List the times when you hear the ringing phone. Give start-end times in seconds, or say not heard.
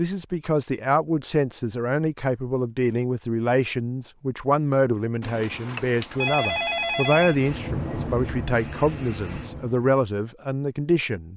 5.2-7.3.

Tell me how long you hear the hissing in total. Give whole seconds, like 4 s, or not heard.
3 s.